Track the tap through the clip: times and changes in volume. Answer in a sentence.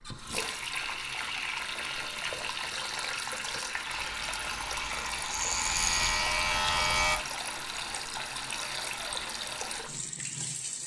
The tap can be heard from 0.0 to 10.8 s, at a steady volume.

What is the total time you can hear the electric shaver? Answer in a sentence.
You can hear the electric shaver for 3 seconds altogether.